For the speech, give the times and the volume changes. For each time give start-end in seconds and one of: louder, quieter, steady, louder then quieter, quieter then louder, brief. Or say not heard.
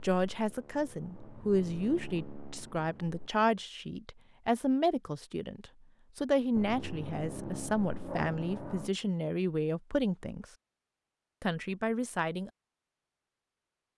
0.0-10.4 steady
11.4-12.5 brief.